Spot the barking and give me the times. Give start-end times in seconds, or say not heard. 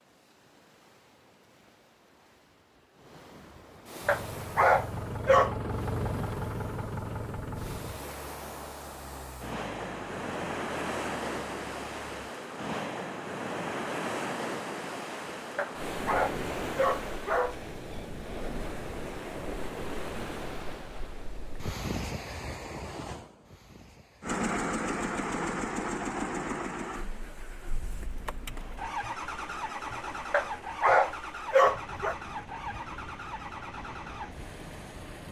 4.0-5.5, 15.6-17.6, 30.3-32.1.